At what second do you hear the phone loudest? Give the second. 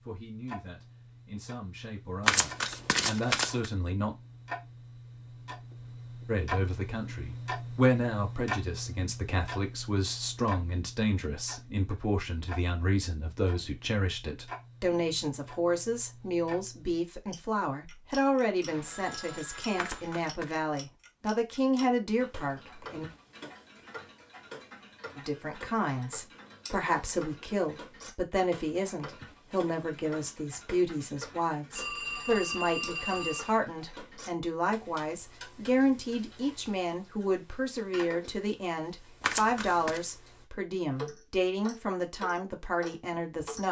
33 s.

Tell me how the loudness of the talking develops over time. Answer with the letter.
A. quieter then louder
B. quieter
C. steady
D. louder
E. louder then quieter
C.